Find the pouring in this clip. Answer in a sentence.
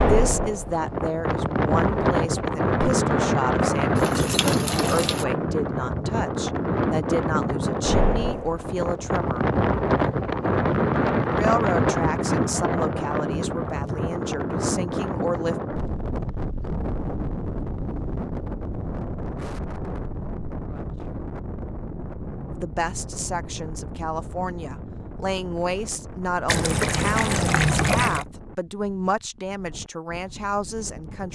The pouring can be heard from 3.8 to 5.2 s and from 26.4 to 28.2 s.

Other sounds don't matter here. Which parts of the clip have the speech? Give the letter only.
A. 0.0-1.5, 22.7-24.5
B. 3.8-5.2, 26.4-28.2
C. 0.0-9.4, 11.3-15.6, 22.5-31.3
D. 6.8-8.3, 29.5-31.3
C.